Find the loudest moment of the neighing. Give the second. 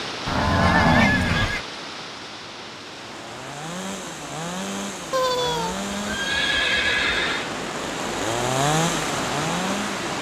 1 s.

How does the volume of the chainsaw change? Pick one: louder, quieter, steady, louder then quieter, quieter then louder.
louder.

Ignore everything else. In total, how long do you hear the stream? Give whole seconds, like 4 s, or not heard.
10 s.